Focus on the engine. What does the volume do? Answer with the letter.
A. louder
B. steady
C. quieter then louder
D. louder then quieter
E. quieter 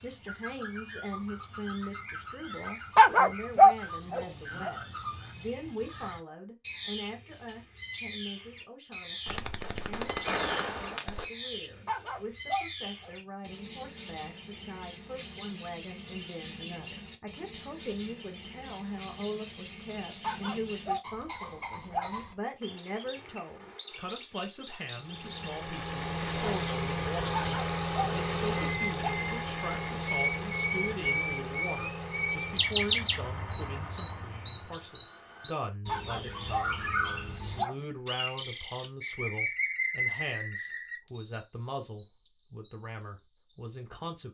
E.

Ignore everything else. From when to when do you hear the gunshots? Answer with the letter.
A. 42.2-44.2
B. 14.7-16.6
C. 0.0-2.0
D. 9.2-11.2
D.